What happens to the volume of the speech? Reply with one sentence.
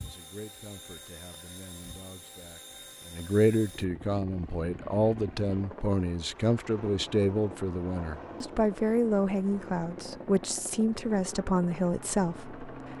The loudness of the speech goes up.